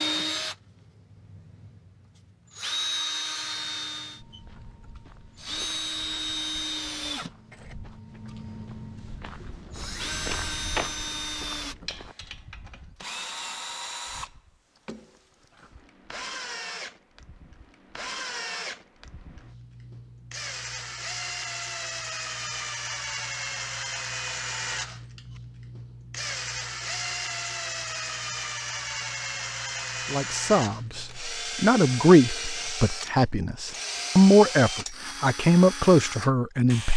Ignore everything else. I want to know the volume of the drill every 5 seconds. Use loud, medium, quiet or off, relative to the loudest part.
loud, loud, loud, medium, loud, loud, loud, loud.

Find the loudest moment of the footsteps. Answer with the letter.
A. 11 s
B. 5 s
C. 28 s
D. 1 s
A.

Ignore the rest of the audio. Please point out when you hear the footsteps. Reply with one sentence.
You can hear the footsteps from 4.2 to 12.2 s.